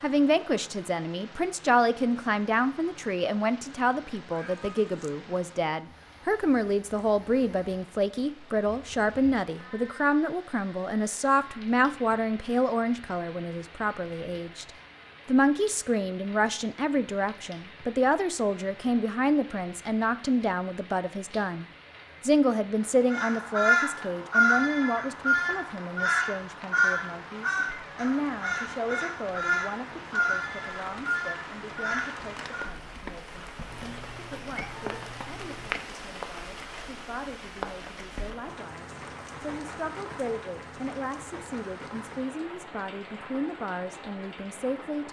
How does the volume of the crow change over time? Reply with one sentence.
The volume of the crow goes down.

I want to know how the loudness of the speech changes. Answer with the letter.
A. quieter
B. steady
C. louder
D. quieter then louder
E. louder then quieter
A.